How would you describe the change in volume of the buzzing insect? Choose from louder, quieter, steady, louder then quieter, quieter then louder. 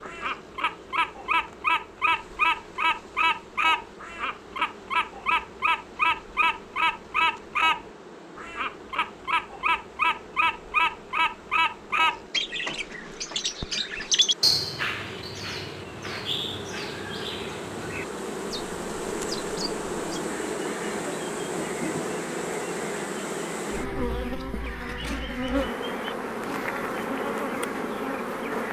louder.